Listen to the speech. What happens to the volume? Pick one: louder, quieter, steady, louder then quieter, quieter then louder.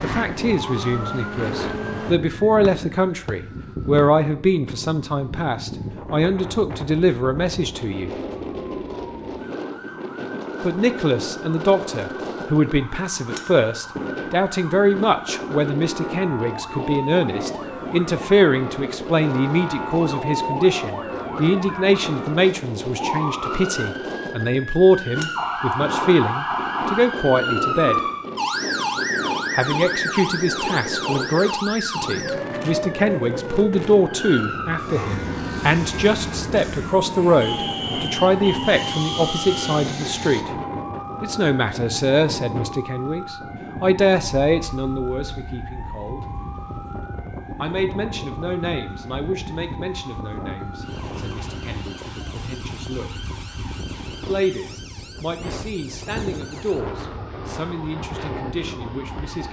quieter.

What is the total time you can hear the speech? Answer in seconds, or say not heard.
52 s.